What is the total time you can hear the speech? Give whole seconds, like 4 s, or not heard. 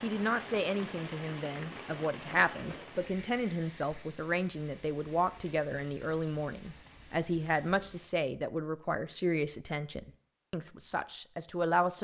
12 s.